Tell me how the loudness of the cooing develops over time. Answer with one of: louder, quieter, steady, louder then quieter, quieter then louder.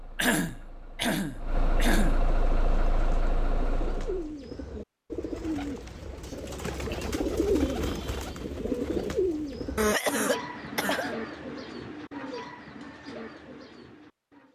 louder then quieter.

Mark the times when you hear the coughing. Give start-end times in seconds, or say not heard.
0.1-2.2, 6.2-7.2, 9.8-11.2.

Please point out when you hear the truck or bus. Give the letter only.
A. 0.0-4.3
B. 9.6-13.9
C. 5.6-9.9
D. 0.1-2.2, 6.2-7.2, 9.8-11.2
A.